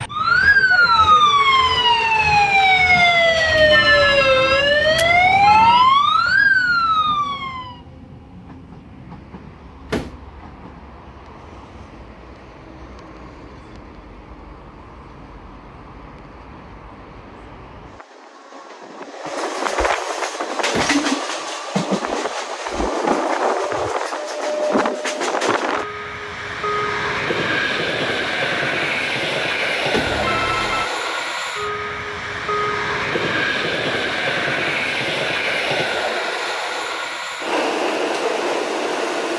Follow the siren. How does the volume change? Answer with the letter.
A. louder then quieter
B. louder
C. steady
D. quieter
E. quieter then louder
C.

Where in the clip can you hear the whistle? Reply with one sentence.
You can't hear the whistle here.